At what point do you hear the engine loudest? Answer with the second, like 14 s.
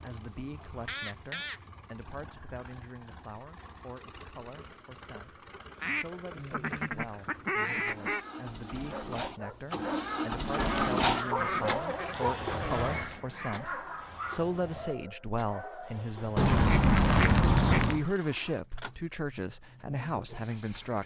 11 s.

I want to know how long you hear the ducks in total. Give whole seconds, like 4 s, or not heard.
8 s.